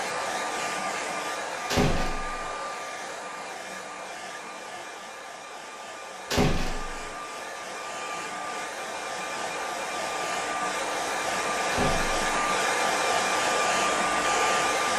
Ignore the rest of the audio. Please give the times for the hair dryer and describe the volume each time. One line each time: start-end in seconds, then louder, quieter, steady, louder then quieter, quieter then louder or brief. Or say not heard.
0.0-14.9 quieter then louder.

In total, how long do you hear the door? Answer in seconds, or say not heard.
2 s.